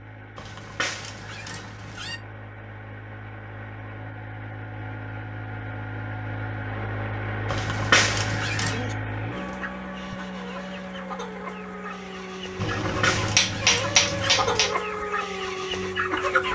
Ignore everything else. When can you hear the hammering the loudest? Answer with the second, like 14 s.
14 s.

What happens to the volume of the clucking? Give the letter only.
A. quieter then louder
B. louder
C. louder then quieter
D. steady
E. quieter
B.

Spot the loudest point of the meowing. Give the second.
8 s.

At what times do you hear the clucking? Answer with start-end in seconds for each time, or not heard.
8.7-16.4.